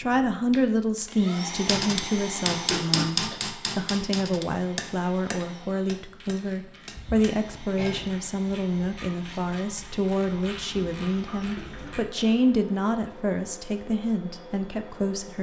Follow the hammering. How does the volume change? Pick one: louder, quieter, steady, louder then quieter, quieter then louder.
quieter.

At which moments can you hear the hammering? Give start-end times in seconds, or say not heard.
1.6-8.1.